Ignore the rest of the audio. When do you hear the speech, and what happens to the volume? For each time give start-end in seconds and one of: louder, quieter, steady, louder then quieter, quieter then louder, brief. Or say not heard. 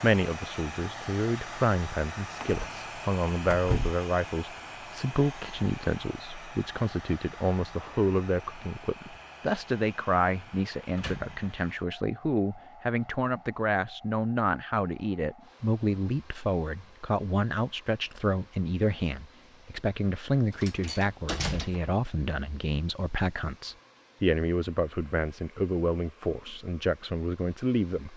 0.0-28.1 steady.